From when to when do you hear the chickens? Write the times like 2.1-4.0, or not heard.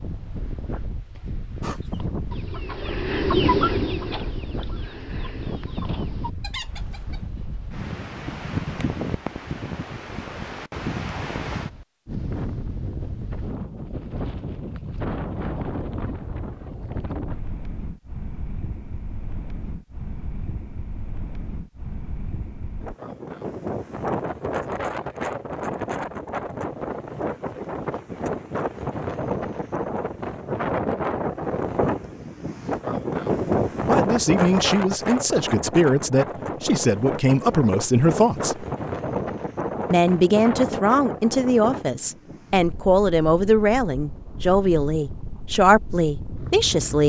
1.6-7.2.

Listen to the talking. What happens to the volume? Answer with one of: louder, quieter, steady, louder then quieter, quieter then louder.
steady.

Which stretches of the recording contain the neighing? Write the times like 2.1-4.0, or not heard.
not heard.